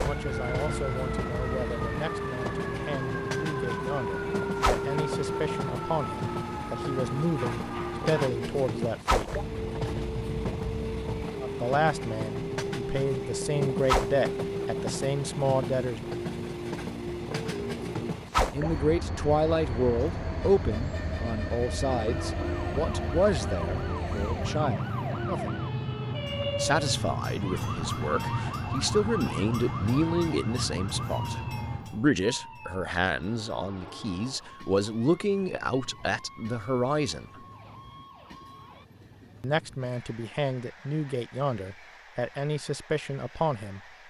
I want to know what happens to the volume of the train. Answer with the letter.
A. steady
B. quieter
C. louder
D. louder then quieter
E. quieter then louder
B.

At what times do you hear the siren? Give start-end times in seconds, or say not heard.
0.0-8.3, 21.8-38.9.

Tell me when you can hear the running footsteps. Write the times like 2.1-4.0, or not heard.
not heard.